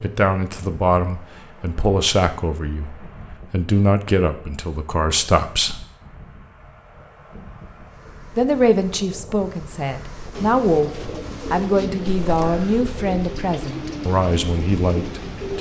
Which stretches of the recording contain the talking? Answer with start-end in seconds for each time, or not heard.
0.0-5.8, 8.3-15.5.